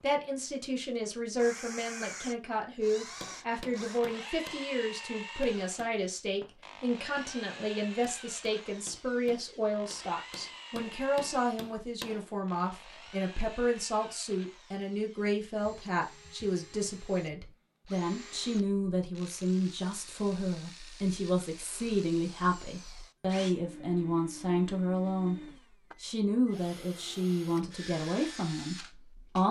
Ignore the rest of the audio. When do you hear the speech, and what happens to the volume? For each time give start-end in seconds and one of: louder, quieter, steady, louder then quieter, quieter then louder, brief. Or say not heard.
0.0-29.4 steady.